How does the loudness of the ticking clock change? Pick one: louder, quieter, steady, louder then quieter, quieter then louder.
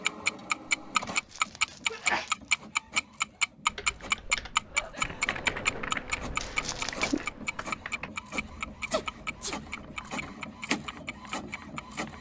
quieter.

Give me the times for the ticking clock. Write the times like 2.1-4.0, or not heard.
0.1-12.1.